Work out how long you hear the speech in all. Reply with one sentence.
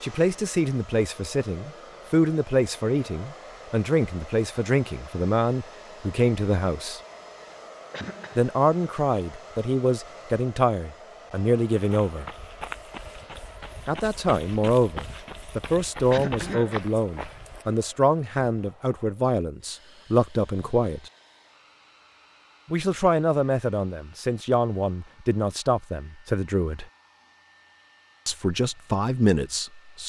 The speech can be heard for 24 seconds in total.